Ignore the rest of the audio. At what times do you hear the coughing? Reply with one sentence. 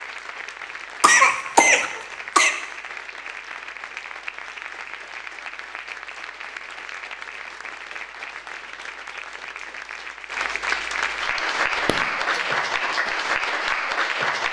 The coughing can be heard from 1.0 to 2.5 s and from 11.8 to 12.4 s.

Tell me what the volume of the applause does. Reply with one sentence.
The loudness of the applause goes up.